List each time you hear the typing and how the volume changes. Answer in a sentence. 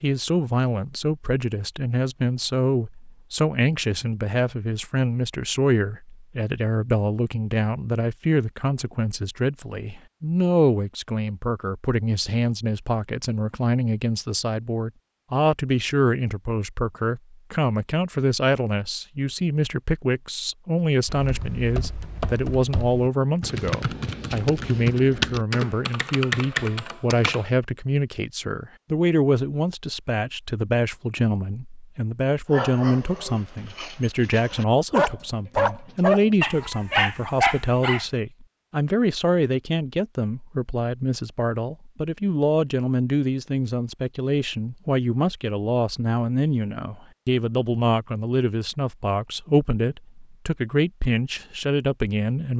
The typing can be heard from 21.1 to 27.4 s, getting louder.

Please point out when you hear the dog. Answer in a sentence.
The dog can be heard from 32.5 to 38.0 s.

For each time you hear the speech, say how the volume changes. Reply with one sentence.
You can hear the speech from 0.0 to 52.5 s, at a steady volume.